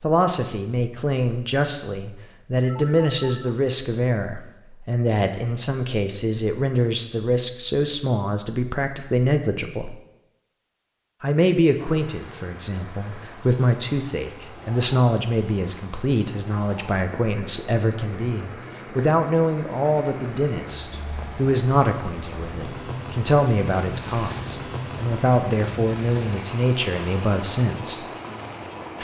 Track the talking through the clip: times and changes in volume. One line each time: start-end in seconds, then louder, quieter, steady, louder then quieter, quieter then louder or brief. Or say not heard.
0.0-9.9 steady
11.2-28.1 steady.